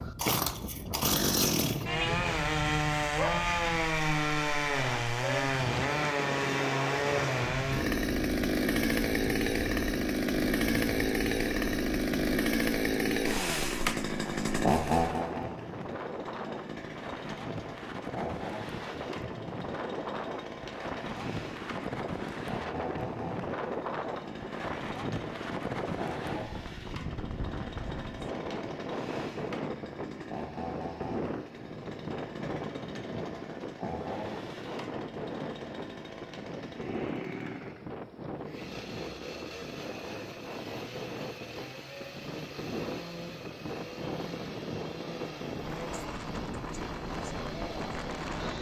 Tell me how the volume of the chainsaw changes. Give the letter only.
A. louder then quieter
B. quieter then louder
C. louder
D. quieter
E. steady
D.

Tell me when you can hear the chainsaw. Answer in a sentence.
The chainsaw can be heard from 0.0 to 48.5 s.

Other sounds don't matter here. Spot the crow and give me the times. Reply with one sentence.
The crow can't be heard in this clip.